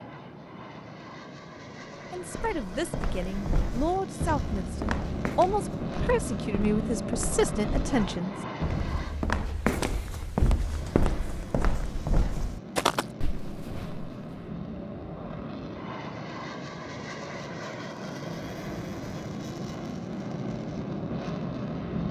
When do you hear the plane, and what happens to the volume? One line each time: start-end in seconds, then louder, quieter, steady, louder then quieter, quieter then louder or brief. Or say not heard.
0.0-9.3 louder
10.6-22.0 louder.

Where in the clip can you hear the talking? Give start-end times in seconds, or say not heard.
1.8-8.3.